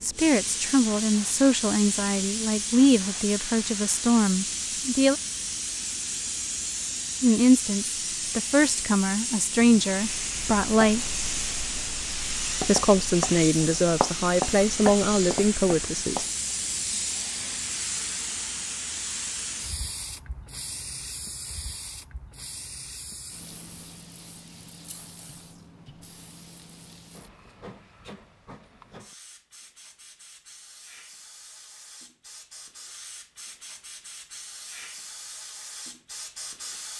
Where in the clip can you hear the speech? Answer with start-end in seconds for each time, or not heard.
0.0-5.2, 7.2-11.1, 12.7-16.2.